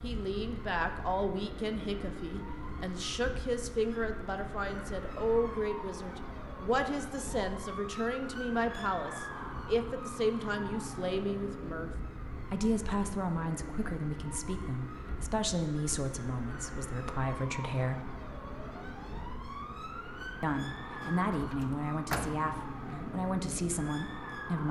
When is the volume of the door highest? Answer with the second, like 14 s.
22 s.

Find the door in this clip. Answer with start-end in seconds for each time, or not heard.
21.0-22.4.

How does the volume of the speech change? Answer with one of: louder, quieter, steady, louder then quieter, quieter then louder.
steady.